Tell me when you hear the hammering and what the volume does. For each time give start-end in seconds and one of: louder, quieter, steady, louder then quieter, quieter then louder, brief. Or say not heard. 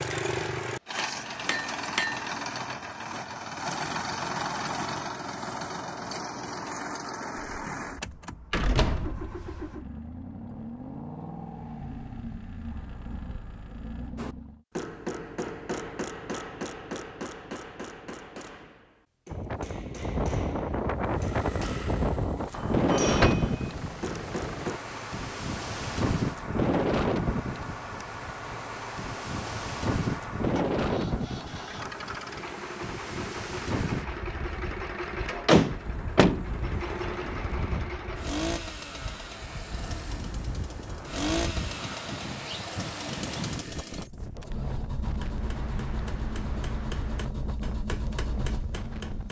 0.0-2.2 brief
14.2-24.8 quieter then louder
45.0-49.2 louder.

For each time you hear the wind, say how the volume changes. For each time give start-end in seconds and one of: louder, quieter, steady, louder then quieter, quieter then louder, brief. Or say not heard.
19.2-49.2 quieter.